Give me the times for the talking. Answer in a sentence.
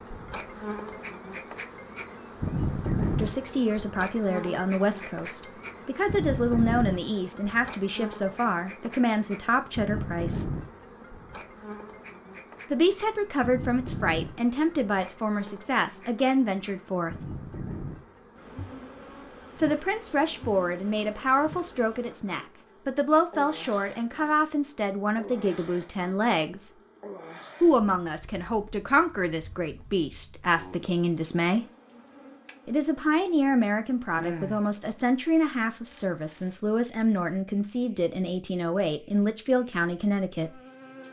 You can hear the talking from 3.1 to 10.4 s, from 12.7 to 17.1 s, from 19.6 to 26.7 s, from 27.6 to 31.6 s and from 32.6 to 40.5 s.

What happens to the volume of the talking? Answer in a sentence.
The loudness of the talking stays about the same.